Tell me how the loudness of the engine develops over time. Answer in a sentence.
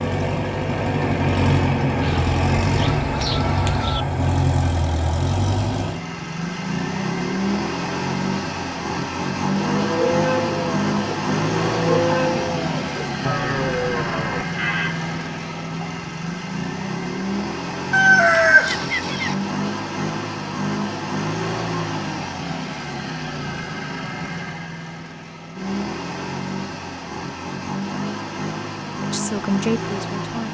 The volume of the engine goes down.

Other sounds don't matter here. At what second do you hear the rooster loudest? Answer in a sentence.
The volume of the rooster peaks at 18 seconds.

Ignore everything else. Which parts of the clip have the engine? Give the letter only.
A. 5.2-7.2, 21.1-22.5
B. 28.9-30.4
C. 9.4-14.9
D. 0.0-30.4
D.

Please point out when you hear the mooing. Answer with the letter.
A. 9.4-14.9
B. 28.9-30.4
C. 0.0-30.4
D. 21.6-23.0
A.